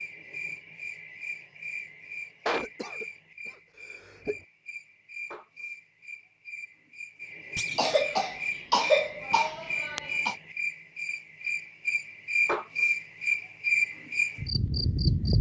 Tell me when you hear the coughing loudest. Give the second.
9 s.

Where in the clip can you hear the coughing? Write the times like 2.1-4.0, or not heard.
2.5-4.4, 7.8-10.3.